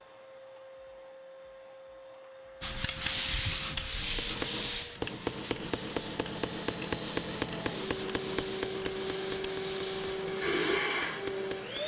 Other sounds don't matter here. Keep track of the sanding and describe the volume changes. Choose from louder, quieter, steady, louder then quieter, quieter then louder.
quieter.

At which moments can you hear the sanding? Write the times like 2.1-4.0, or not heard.
2.6-10.8.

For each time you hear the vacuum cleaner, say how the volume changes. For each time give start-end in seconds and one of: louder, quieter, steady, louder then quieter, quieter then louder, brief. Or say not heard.
0.0-11.8 louder.